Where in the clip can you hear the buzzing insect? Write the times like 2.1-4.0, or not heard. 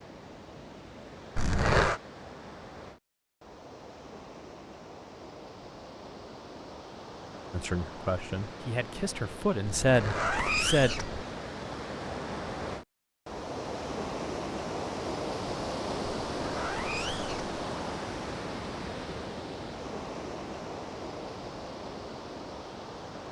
not heard.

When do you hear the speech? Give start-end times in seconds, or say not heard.
7.5-10.9.